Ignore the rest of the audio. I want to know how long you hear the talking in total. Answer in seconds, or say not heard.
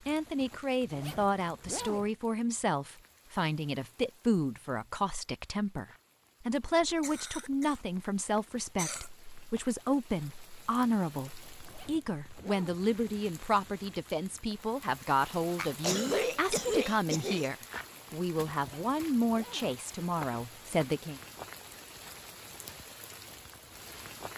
21 s.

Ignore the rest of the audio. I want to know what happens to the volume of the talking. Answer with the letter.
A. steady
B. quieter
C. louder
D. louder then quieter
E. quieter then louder
A.